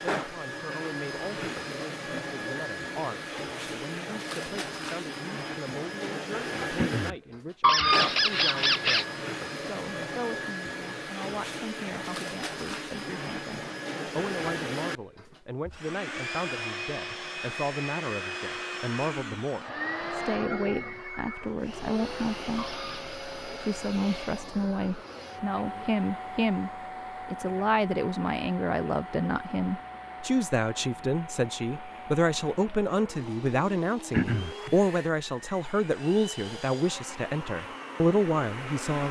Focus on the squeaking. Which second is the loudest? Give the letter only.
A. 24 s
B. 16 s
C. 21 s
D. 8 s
D.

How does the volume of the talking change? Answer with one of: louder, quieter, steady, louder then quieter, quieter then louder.
louder.